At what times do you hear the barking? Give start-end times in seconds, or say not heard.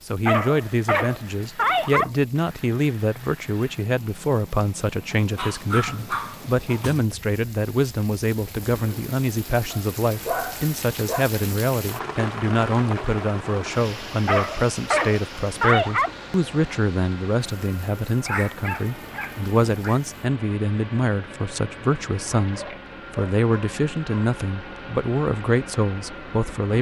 0.2-2.1, 5.1-7.1, 9.7-11.2, 14.2-16.1, 18.2-20.0, 22.4-24.3.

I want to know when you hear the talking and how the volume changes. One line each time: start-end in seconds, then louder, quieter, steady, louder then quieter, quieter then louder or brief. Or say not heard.
0.1-26.7 steady.